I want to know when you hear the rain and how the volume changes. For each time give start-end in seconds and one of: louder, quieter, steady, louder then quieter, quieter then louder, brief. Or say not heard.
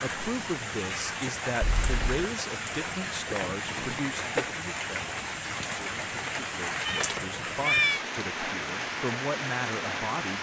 0.0-10.3 steady.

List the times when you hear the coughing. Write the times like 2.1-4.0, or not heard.
not heard.